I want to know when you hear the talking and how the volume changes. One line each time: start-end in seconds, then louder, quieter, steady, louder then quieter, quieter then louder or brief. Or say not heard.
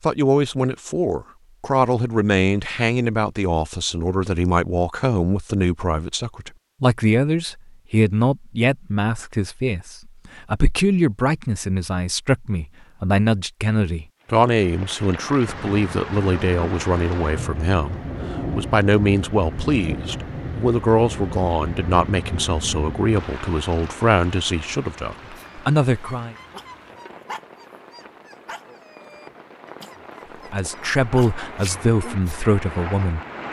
0.0-26.4 steady
30.5-33.2 brief.